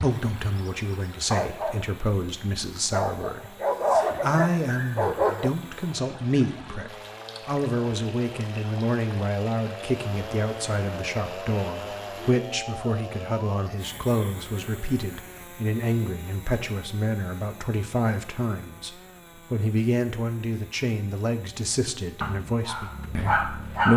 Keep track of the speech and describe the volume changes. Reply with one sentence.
The volume of the speech stays about the same.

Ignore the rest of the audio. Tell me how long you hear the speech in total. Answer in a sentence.
You can hear the speech for 24 seconds altogether.